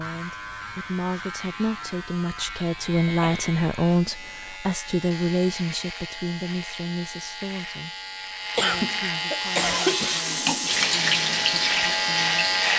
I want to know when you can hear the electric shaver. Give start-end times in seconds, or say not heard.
0.0-12.7.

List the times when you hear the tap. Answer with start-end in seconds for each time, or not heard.
9.5-12.7.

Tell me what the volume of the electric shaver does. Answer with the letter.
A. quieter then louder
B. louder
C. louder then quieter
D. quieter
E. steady
B.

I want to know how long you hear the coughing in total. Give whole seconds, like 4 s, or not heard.
3 s.